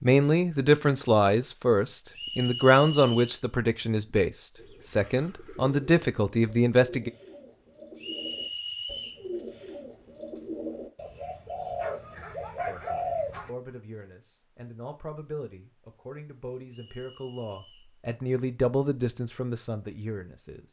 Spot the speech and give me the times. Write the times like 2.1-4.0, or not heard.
0.0-7.1, 12.7-20.6.